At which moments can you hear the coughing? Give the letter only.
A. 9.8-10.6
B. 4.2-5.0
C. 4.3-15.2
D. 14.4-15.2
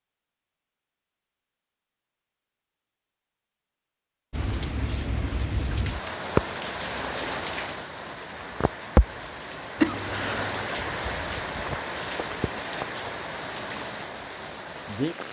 A.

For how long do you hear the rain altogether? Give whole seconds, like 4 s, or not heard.
11 s.